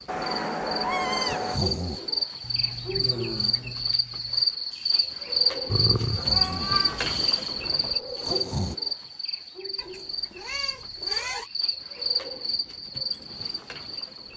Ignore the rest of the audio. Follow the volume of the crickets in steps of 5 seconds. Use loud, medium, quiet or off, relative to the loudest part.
loud, loud, medium.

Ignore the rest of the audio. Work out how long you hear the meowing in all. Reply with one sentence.
You can hear the meowing for 5 seconds altogether.